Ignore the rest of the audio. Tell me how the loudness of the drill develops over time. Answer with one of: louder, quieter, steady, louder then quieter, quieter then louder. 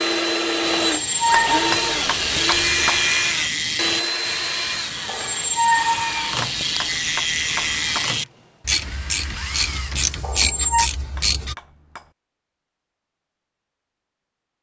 quieter.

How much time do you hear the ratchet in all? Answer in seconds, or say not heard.
11 s.